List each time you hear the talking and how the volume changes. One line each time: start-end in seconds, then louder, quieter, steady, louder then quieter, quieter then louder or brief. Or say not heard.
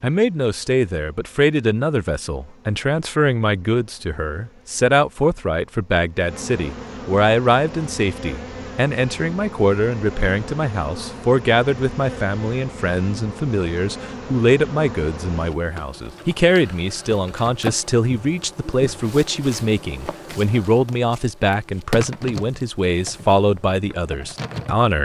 0.0-24.9 steady.